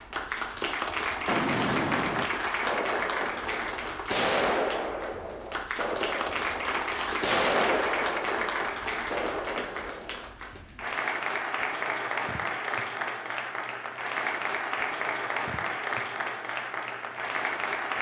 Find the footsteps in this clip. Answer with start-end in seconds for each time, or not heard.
not heard.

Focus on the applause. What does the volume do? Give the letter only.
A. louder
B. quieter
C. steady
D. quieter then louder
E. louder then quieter
C.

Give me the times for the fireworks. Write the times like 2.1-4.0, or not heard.
1.2-10.6.